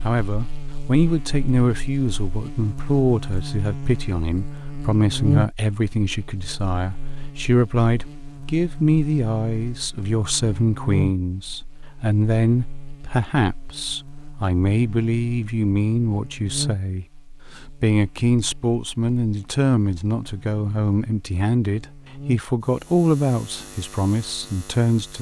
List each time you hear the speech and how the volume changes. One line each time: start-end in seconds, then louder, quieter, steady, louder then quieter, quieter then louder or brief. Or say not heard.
0.0-25.1 steady.